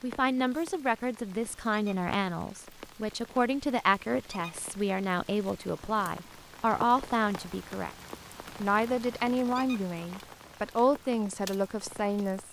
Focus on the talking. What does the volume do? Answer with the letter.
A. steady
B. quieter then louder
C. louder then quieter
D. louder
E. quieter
A.